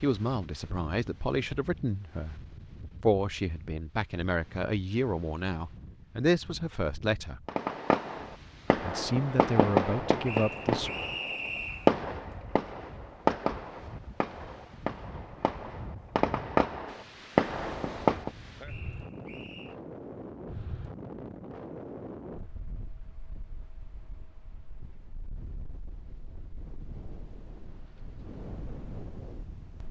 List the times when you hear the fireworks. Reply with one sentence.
You can hear the fireworks from 7.5 to 18.3 s.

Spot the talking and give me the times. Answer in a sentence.
The talking can be heard from 0.0 to 7.4 s and from 8.8 to 10.9 s.